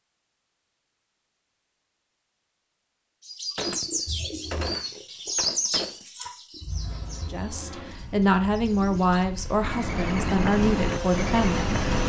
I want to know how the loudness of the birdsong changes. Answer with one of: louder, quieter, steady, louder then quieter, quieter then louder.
quieter then louder.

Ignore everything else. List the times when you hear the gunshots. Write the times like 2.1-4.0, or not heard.
3.5-6.0.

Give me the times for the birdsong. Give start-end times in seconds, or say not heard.
3.2-12.0.